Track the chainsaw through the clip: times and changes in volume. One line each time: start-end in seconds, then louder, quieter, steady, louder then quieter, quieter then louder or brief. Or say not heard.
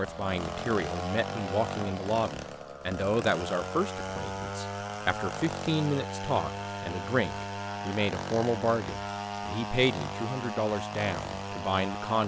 0.0-12.2 steady.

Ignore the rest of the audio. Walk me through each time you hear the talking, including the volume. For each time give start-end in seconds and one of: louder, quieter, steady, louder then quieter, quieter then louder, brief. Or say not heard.
0.0-12.2 steady.